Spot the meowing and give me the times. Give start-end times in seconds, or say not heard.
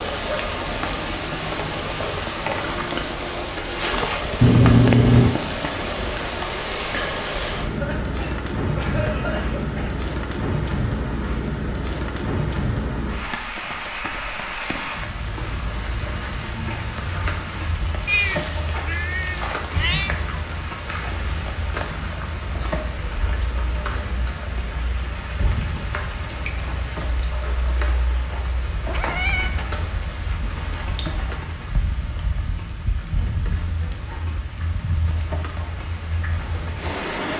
4.4-5.3, 18.1-20.1, 28.9-29.5.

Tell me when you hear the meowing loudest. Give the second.
5 s.